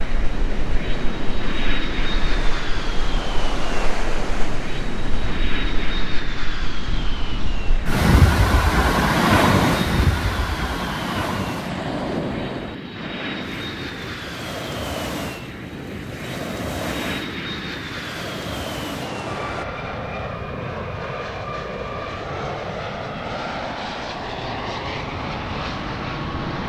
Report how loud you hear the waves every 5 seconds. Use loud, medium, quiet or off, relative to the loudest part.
medium, loud, medium, medium, off, off.